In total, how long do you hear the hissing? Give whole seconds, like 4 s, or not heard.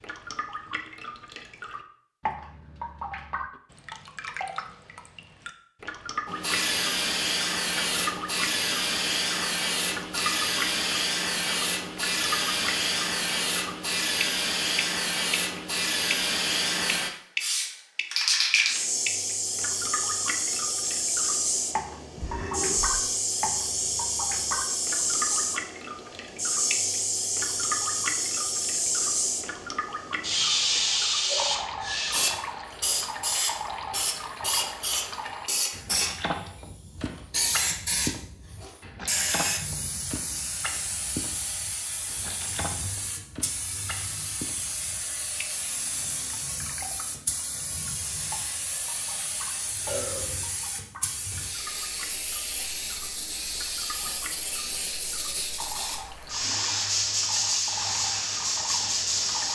53 s.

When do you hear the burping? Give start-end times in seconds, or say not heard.
22.1-23.0, 49.9-50.4.